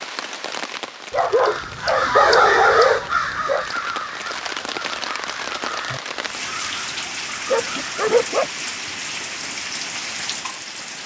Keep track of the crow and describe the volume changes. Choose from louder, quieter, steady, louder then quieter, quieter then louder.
quieter.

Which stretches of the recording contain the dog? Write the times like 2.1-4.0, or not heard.
1.1-3.6, 7.5-8.5.